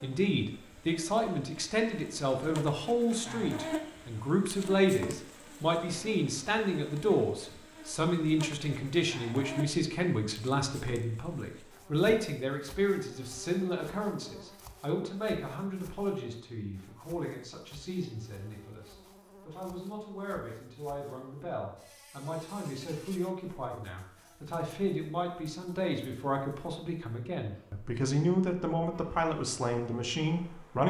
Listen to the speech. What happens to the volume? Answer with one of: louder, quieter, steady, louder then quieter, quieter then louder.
quieter then louder.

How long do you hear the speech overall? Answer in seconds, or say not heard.
31 s.